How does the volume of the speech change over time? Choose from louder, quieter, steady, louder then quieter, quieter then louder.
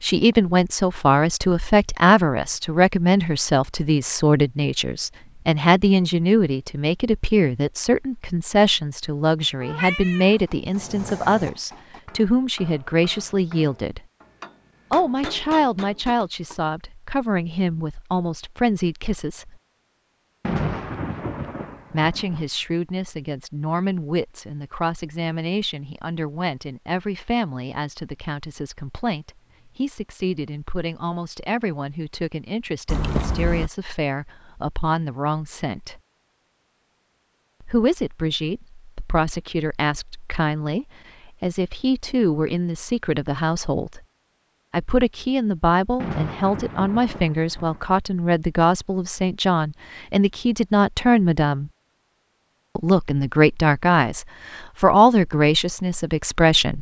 quieter then louder.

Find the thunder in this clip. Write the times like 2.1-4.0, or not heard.
20.4-22.4, 46.0-48.0.